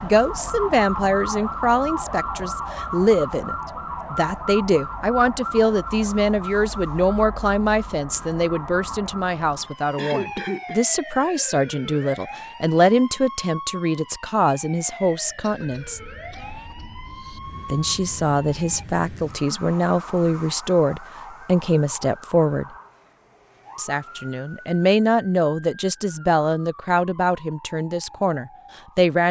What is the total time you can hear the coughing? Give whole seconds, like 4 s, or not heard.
3 s.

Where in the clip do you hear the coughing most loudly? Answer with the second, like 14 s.
10 s.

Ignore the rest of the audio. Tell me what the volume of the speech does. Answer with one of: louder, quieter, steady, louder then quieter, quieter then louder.
steady.